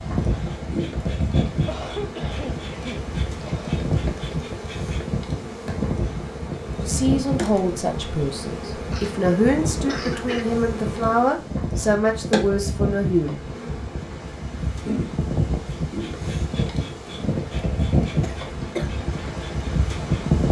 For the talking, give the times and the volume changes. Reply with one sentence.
You can hear the talking from 6.8 to 13.4 s, at a steady volume.